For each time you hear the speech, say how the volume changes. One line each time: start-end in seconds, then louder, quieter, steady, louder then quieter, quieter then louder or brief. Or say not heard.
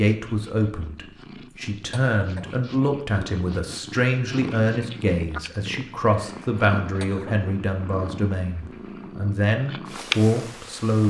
0.0-11.0 steady.